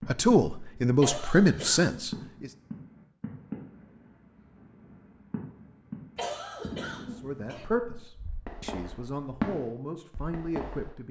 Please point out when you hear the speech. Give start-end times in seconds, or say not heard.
0.1-2.5, 7.0-11.0.